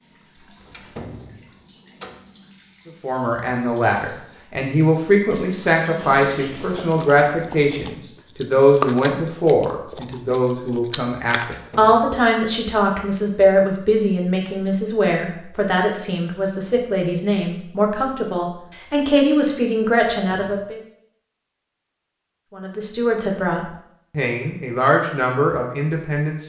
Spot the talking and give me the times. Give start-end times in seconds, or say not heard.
3.0-20.8, 22.5-26.4.